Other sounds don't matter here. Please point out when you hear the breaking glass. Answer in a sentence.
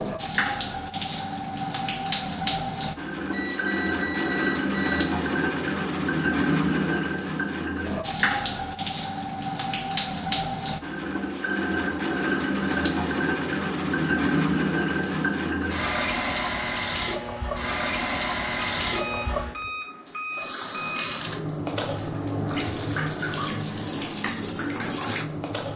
You can't hear the breaking glass here.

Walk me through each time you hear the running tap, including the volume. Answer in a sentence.
The running tap can be heard from 0.0 to 25.7 s, at a steady volume.